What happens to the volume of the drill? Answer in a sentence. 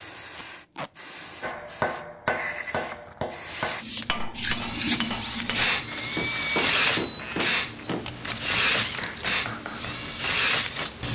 The loudness of the drill goes up, then down.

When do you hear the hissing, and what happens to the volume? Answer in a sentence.
The hissing can be heard from 0.0 to 11.0 s, getting louder.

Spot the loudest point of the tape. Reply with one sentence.
The loudest moment of the tape is at 9 seconds.